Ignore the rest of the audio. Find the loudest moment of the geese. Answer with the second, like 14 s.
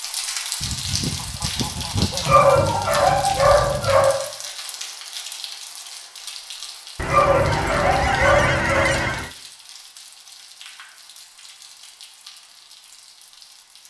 8 s.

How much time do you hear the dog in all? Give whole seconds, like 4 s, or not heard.
4 s.